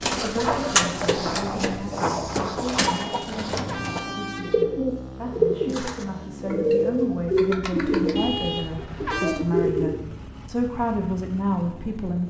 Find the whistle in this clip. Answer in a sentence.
You can't hear the whistle here.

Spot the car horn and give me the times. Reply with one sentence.
The car horn can be heard from 2.8 to 4.7 s and from 8.2 to 9.4 s.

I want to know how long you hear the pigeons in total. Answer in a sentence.
The pigeons can be heard for 10 seconds in total.